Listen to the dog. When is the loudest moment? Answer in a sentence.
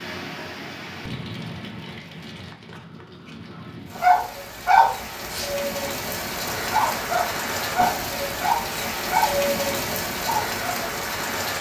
The loudest moment of the dog is at 5 seconds.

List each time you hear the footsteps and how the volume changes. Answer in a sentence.
The footsteps can't be heard in this clip.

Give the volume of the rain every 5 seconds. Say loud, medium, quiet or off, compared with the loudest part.
medium, loud, loud.